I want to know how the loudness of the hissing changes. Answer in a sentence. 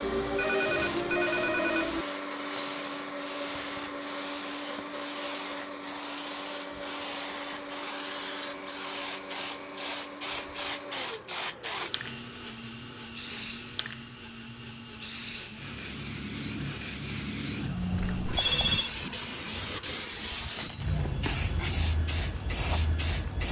The loudness of the hissing goes up.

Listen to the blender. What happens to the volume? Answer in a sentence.
The volume of the blender goes down.